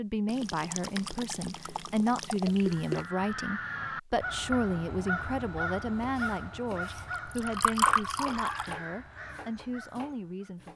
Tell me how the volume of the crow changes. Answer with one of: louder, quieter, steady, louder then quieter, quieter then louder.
quieter.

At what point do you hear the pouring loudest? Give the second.
8 s.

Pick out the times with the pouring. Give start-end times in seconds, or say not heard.
0.2-3.0, 7.1-8.8.